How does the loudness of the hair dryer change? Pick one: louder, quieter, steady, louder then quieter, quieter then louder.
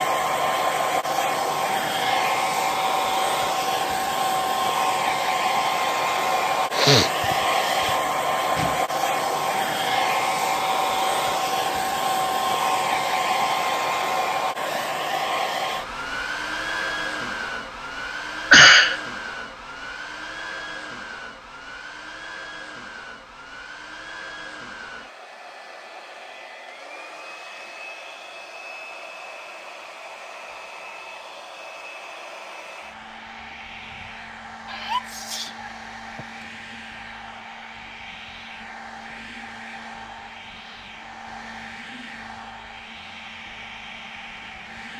quieter.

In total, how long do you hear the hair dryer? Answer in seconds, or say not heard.
45 s.